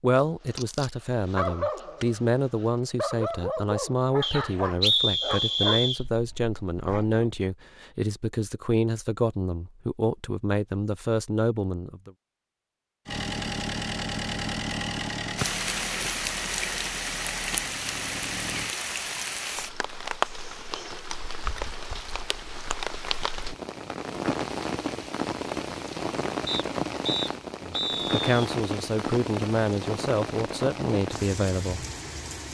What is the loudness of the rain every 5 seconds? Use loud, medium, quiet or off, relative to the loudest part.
off, off, off, loud, loud, loud, loud.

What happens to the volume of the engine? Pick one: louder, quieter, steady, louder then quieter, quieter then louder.
quieter.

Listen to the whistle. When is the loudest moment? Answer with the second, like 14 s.
5 s.